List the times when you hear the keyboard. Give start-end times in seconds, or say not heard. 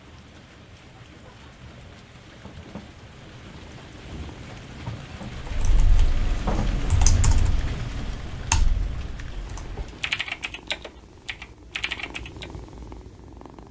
5.4-12.5.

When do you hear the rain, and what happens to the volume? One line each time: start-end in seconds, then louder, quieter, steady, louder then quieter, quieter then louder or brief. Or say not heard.
0.0-10.3 louder then quieter.